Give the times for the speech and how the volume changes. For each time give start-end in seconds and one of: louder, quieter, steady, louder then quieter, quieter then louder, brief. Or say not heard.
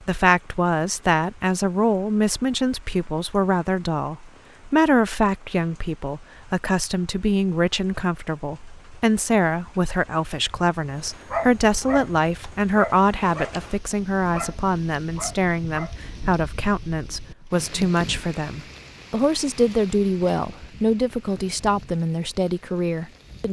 0.1-23.4 steady.